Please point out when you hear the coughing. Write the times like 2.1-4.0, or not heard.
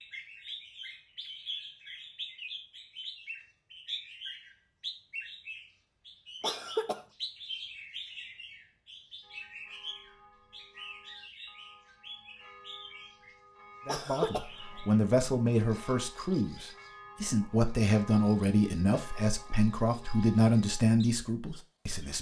6.4-7.0, 13.8-14.5.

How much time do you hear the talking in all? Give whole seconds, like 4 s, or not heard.
8 s.